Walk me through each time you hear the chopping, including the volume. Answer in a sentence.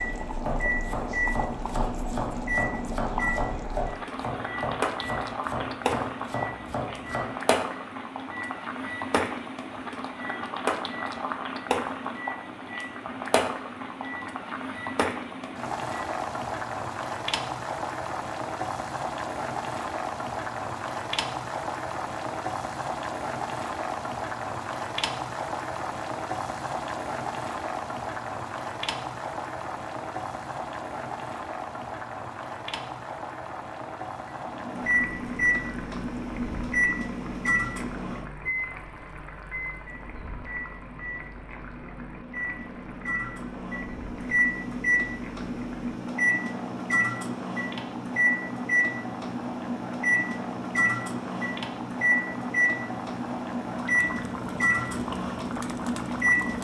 You can hear the chopping from 0.5 to 7.2 s, at a steady volume.